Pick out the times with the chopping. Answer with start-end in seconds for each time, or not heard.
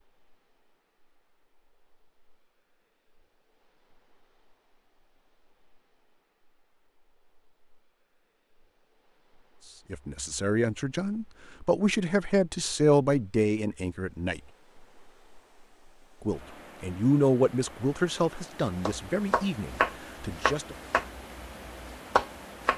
18.9-22.7.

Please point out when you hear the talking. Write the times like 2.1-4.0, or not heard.
9.9-14.4, 16.2-20.8.